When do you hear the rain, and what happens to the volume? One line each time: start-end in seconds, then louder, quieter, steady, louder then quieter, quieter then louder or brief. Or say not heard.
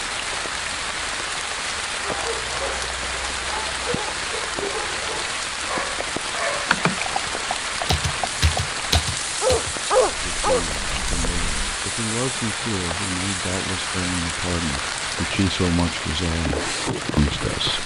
0.0-17.8 steady.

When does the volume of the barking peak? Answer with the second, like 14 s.
10 s.